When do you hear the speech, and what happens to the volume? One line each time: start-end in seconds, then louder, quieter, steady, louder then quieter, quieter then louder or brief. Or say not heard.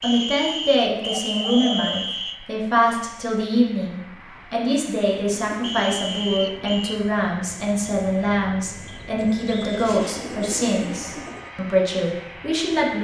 0.0-13.0 steady.